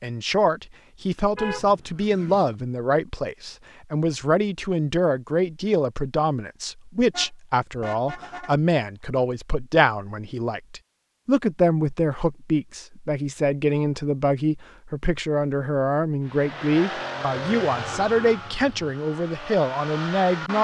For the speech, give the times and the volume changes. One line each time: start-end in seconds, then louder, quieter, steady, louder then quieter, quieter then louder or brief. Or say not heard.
0.0-20.6 steady.